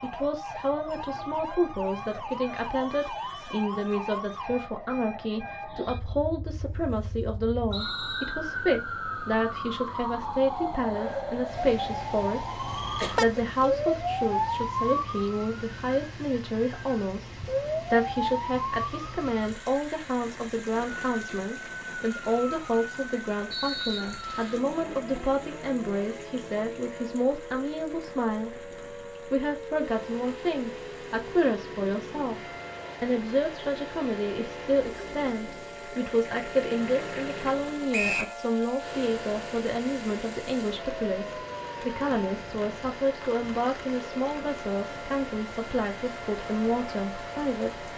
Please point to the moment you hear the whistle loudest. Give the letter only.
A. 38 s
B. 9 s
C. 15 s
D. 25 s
A.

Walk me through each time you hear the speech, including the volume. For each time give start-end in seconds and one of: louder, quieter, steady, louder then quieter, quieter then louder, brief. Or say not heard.
0.0-17.3 steady
17.9-32.4 steady
33.0-47.9 steady.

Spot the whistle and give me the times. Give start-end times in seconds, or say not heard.
7.7-8.3, 23.5-24.6, 37.9-38.4.